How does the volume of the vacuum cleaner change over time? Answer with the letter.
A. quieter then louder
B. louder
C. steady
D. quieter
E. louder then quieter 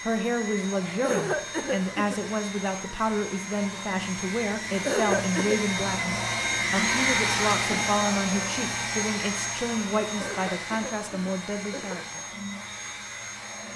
E.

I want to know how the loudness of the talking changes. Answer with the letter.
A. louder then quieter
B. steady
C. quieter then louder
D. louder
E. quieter
B.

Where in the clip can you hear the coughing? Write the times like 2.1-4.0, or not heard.
1.0-2.2, 4.8-5.6, 10.2-12.2.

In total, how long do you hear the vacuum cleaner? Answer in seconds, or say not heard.
14 s.